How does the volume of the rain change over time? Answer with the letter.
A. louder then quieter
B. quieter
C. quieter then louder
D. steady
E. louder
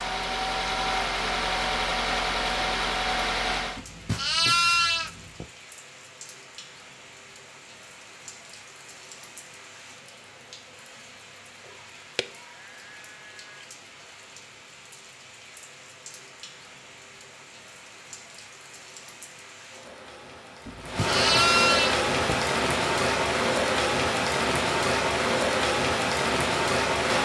E.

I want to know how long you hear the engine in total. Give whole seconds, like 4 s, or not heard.
4 s.